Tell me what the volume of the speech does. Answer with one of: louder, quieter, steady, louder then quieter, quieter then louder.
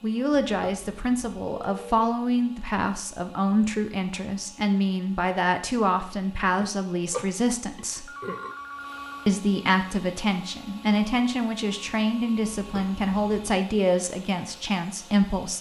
steady.